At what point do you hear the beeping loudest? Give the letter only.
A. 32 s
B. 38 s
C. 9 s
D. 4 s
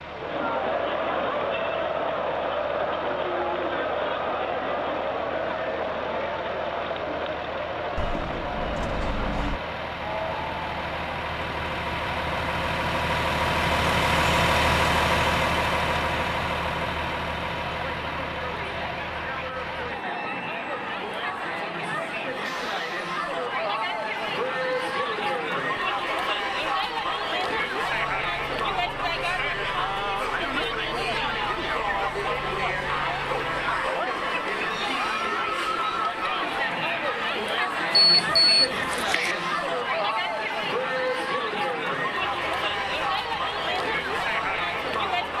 B.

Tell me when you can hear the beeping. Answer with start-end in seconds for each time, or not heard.
8.0-9.6, 37.9-39.4.